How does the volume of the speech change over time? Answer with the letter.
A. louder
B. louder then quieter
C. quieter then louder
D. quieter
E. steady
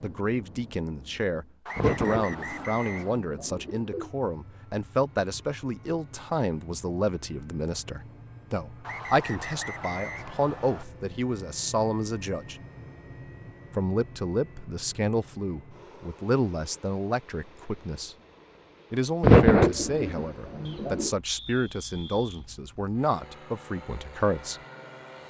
E.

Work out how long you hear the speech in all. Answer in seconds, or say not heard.
23 s.